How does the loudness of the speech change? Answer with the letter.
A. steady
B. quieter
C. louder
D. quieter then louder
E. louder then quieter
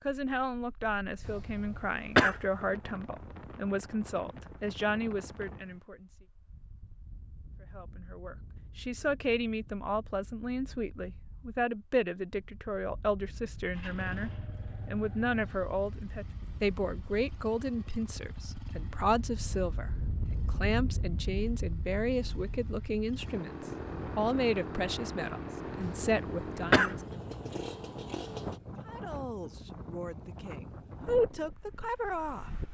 A.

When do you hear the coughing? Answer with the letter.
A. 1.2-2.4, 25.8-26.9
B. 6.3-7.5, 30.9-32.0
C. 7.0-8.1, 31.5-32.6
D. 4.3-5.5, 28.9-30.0
A.